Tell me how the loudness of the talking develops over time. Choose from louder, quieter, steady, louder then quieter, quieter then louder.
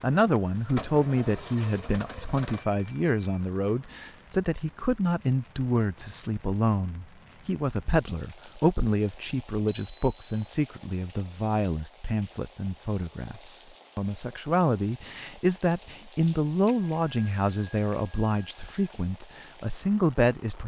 steady.